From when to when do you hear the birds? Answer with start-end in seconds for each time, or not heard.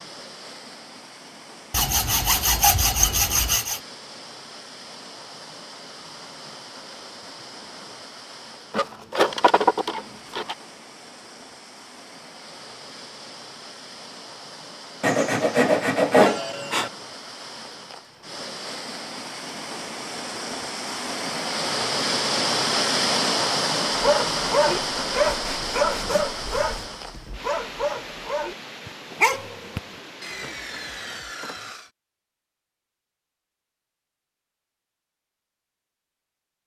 not heard.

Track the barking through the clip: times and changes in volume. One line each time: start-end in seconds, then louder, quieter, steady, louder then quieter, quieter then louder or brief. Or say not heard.
23.9-29.8 quieter then louder.